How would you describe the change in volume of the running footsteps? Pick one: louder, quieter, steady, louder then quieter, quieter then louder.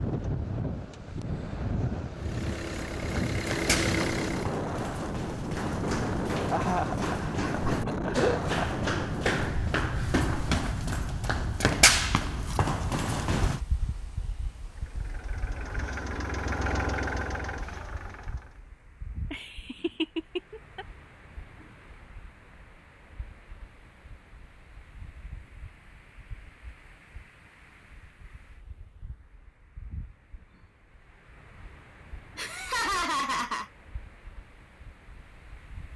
louder.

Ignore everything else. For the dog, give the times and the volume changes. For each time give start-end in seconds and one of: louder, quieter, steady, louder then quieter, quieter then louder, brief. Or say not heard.
not heard.